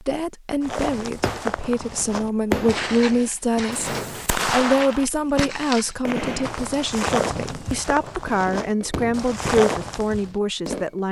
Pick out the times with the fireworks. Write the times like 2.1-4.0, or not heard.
1.1-11.0.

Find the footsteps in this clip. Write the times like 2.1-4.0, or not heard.
0.6-10.2.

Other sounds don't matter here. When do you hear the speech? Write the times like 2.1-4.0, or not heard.
0.0-11.0.